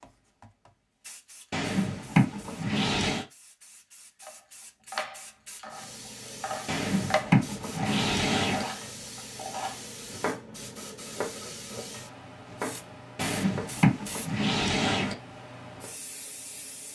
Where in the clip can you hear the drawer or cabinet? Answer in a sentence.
You can hear the drawer or cabinet from 1.5 to 3.2 s, from 6.7 to 8.7 s and from 13.2 to 15.2 s.